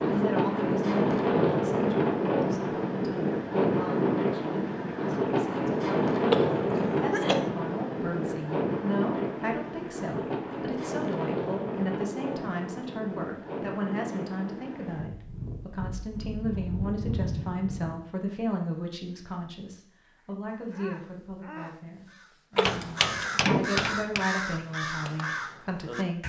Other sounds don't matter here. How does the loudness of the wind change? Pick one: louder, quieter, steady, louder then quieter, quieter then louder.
quieter.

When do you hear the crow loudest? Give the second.
24 s.